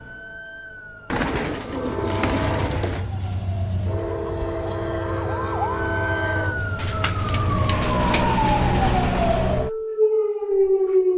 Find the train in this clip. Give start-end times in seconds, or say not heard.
1.6-9.7.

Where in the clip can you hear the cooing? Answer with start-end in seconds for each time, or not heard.
1.1-3.1, 6.8-8.8.